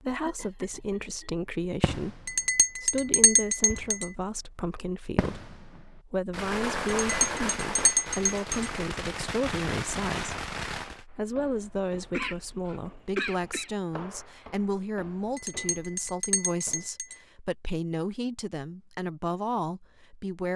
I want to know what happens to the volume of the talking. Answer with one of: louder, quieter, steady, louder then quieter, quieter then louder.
steady.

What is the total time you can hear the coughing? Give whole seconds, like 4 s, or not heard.
3 s.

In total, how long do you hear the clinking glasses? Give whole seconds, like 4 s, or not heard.
5 s.